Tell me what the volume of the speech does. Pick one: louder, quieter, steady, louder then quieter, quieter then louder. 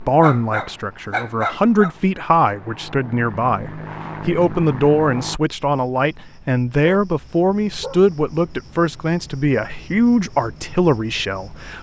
steady.